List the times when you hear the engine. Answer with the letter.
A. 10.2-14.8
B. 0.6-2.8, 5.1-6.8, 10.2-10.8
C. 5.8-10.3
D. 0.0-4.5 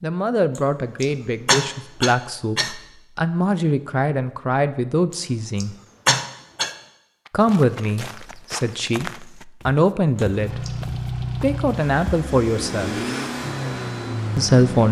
A.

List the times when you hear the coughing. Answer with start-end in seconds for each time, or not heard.
0.6-2.8, 5.1-6.8, 10.2-10.8.